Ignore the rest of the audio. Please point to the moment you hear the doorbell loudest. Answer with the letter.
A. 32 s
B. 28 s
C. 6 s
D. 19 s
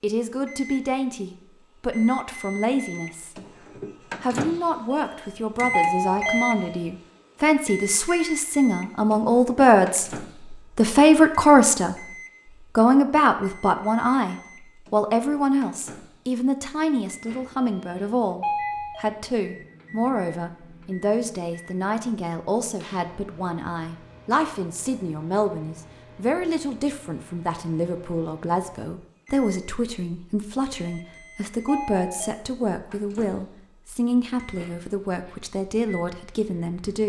C.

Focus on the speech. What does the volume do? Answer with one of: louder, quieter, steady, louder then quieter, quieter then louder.
louder then quieter.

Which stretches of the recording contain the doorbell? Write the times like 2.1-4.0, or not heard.
5.0-6.8, 17.6-19.1, 30.9-32.3.